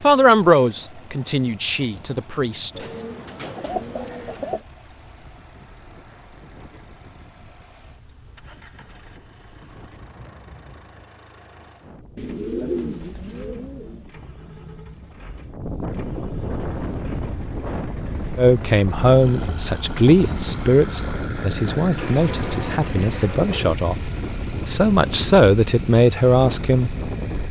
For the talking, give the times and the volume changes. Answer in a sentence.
You can hear the talking briefly from 0.0 to 2.8 s; and from 18.4 to 26.9 s, getting quieter then louder.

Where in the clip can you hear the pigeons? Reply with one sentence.
You can hear the pigeons from 2.8 to 4.6 s, from 12.2 to 14.1 s and from 21.9 to 23.8 s.